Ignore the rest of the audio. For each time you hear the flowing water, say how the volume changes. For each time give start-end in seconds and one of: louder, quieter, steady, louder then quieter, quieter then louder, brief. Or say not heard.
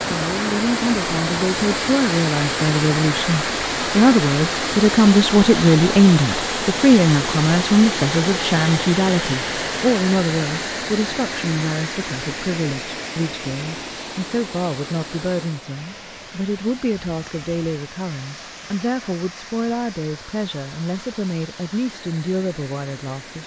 0.0-23.4 quieter.